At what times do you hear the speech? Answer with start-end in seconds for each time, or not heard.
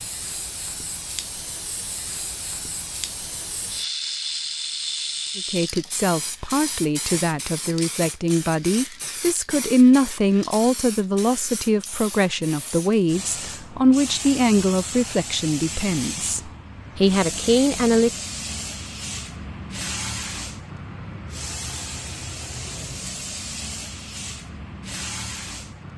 5.3-18.1.